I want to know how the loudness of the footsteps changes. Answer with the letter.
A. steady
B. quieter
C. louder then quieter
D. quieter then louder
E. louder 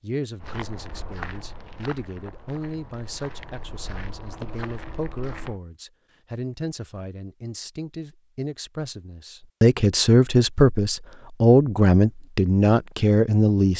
D.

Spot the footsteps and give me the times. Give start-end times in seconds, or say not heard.
0.3-5.6.